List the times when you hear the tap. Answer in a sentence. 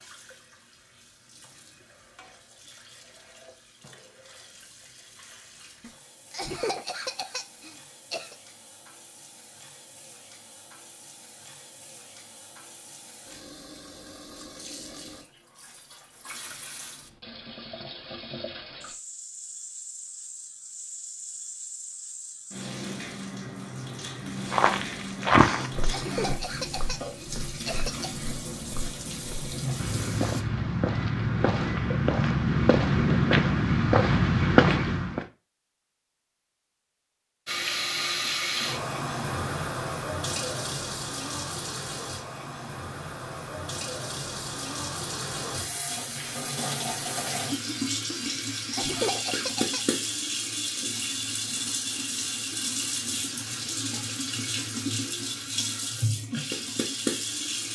The tap can be heard from 0.0 to 30.4 s and from 37.5 to 57.7 s.